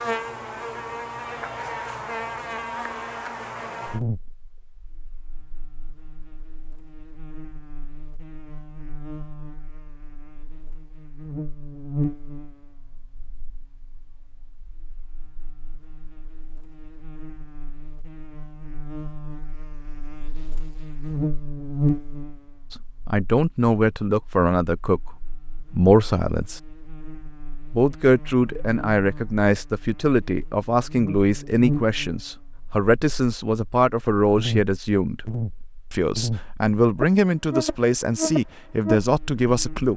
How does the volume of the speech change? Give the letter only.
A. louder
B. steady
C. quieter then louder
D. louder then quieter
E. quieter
B.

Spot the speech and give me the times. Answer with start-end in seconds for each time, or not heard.
22.7-26.6, 27.7-35.2, 35.9-39.9.